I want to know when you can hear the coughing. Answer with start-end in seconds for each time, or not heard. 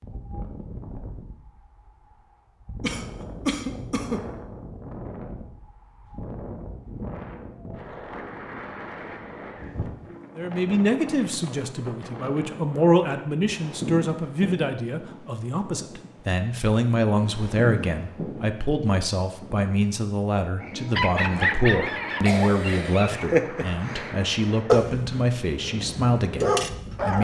2.8-4.2, 22.2-23.1.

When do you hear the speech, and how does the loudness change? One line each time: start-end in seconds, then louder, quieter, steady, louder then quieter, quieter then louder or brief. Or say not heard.
10.3-27.1 steady.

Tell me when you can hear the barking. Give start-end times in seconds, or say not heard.
20.6-27.1.